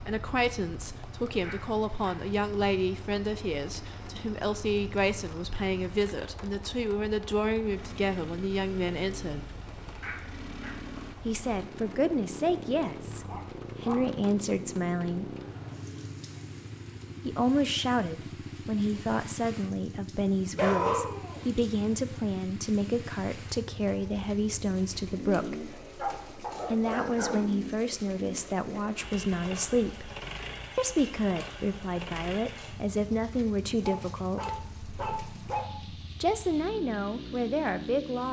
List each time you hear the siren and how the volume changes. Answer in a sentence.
The siren can't be heard in this clip.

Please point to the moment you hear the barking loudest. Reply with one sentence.
The volume of the barking peaks at 21 seconds.